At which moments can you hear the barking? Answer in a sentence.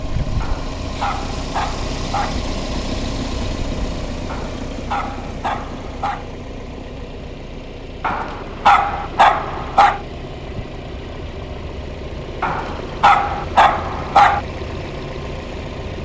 You can hear the barking from 0.4 to 2.4 s, from 4.2 to 6.2 s, from 8.0 to 10.0 s and from 12.4 to 14.4 s.